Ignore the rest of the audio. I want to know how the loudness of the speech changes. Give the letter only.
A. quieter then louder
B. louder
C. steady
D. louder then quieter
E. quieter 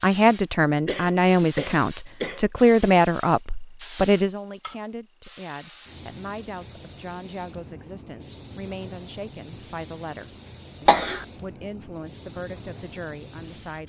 E.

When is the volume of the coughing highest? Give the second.
11 s.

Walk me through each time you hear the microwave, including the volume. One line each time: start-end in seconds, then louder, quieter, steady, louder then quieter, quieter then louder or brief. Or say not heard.
not heard.